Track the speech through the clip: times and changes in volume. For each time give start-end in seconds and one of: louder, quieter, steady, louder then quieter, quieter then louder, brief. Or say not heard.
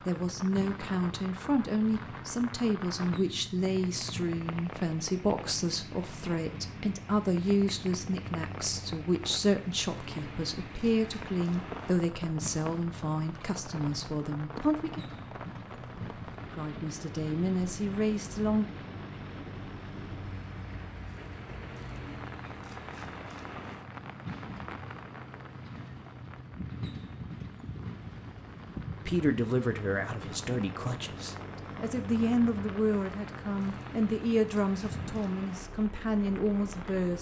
0.0-15.0 steady
16.5-18.7 brief
29.1-37.1 steady.